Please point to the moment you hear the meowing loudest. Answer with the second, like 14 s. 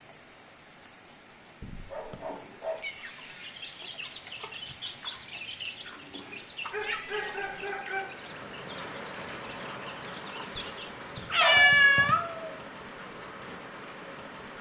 12 s.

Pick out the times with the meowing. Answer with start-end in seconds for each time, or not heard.
1.6-3.0, 6.8-7.3, 11.2-12.5.